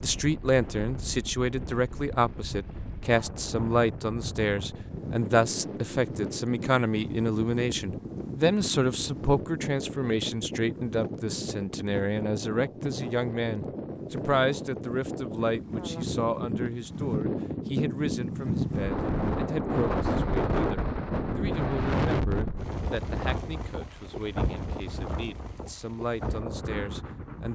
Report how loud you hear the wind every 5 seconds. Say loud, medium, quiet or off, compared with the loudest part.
medium, medium, medium, loud, loud, medium.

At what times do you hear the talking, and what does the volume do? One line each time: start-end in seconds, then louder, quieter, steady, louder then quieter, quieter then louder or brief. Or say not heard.
0.0-27.5 quieter.